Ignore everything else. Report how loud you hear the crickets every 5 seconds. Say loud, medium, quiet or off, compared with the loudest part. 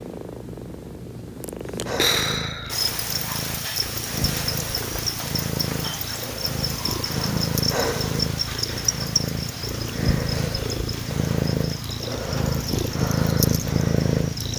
loud, loud, medium.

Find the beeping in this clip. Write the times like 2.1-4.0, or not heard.
not heard.